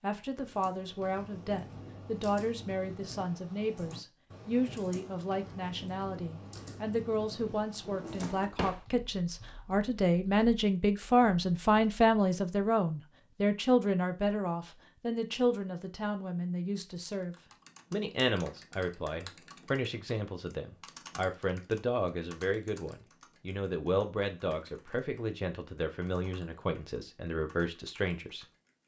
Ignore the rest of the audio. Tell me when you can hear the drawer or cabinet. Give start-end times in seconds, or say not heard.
7.8-8.8.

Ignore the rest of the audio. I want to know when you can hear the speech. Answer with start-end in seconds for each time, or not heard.
0.0-28.4.